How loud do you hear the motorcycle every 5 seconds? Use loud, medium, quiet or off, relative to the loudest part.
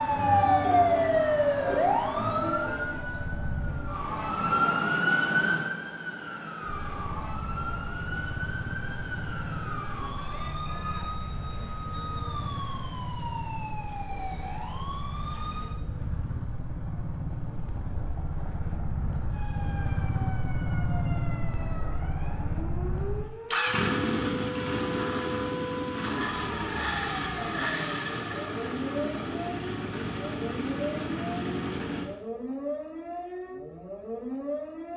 medium, medium, medium, medium, loud, loud, loud.